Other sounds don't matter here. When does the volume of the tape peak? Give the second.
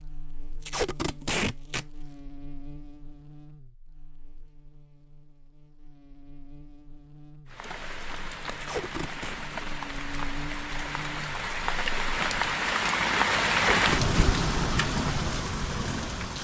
1 s.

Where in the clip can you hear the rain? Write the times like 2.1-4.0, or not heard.
7.5-16.3.